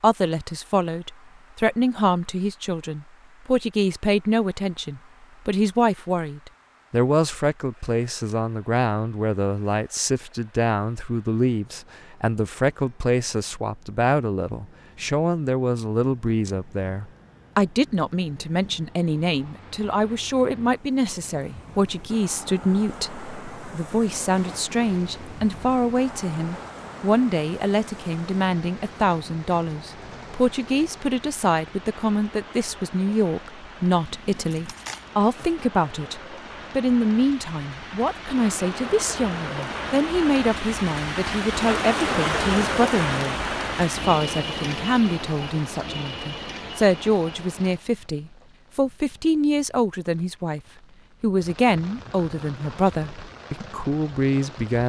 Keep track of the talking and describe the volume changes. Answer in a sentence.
The volume of the talking stays about the same.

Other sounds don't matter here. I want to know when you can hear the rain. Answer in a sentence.
You can hear the rain from 24.4 to 54.8 s.